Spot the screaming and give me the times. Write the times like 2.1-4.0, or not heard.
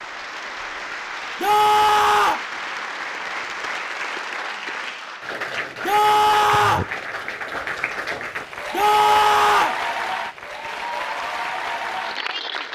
1.4-2.5, 5.8-6.9, 8.7-9.8.